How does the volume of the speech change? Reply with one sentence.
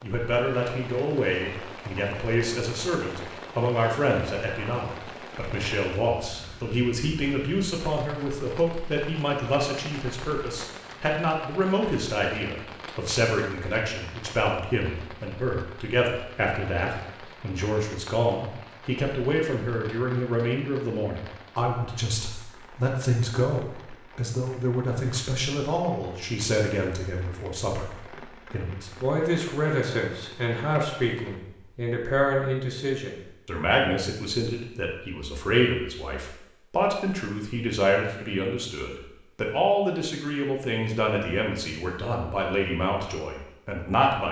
The loudness of the speech stays about the same.